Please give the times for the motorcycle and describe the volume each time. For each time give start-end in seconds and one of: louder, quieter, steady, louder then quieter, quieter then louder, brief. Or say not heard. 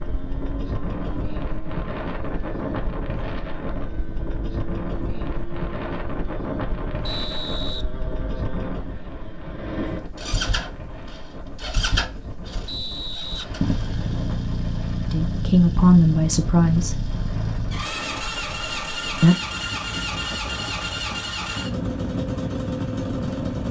0.0-23.6 louder.